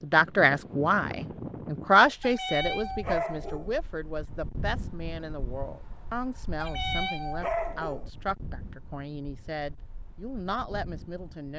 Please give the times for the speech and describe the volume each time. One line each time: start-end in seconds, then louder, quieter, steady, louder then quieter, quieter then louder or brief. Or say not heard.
0.0-11.5 quieter.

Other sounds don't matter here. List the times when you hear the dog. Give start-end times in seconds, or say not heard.
2.2-3.8, 6.6-8.1.